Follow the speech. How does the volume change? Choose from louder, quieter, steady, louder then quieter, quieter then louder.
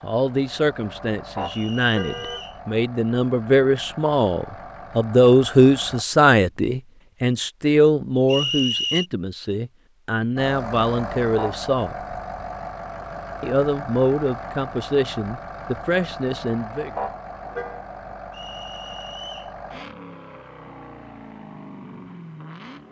louder then quieter.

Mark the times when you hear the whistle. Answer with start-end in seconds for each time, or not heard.
1.4-2.6, 8.2-9.1, 18.3-19.6.